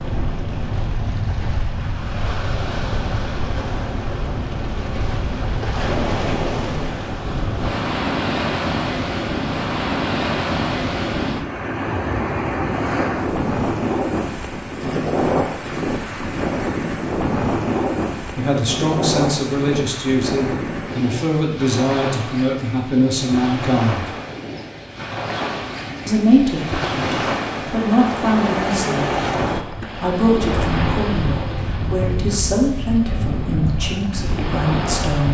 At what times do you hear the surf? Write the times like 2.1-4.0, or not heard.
0.0-35.2.